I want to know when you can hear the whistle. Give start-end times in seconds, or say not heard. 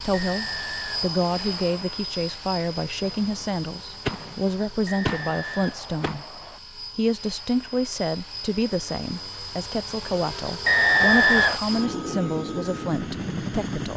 0.1-1.9, 4.8-6.6, 10.7-11.6.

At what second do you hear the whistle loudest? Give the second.
11 s.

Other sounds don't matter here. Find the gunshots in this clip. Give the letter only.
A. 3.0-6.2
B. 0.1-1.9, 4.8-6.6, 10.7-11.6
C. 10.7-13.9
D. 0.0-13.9
A.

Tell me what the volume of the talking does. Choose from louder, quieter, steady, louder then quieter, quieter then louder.
steady.